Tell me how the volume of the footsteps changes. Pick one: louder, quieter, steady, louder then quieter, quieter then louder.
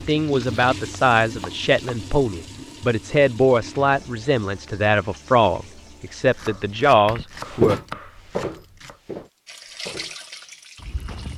quieter.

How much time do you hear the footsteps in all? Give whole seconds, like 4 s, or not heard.
4 s.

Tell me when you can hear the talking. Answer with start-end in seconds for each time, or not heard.
0.1-7.8.